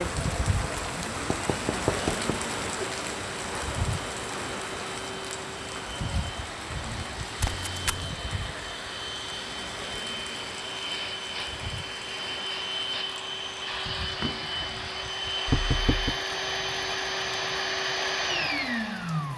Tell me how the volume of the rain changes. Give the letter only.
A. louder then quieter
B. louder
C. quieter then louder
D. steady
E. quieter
E.